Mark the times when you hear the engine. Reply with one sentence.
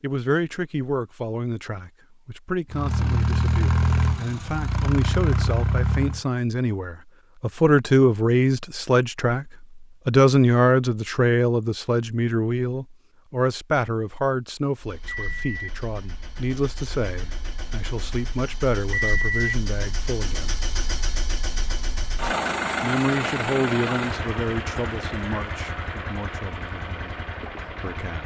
You can hear the engine from 2.7 to 6.2 s and from 14.8 to 28.2 s.